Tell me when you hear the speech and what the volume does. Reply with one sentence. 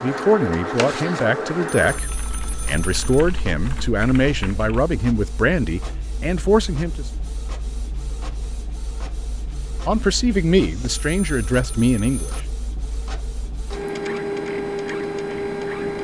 You can hear the speech from 0.0 to 7.0 s, at a steady volume; and briefly from 9.8 to 12.3 s.